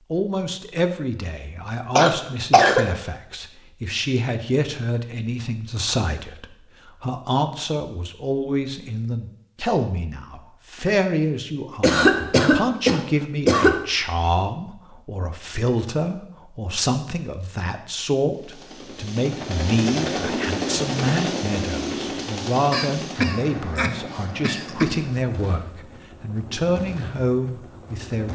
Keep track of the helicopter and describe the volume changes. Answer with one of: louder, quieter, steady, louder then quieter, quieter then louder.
quieter.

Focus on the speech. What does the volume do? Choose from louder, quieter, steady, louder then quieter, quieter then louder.
steady.